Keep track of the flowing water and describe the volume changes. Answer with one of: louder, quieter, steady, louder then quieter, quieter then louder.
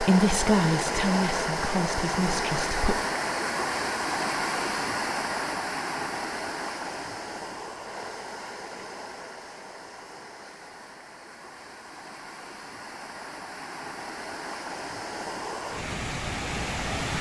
quieter then louder.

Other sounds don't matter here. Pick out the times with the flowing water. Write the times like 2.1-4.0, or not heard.
0.0-17.1.